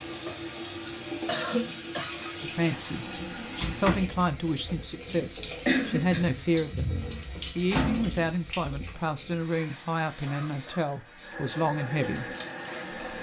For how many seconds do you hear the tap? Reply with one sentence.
The tap can be heard for 13 seconds in total.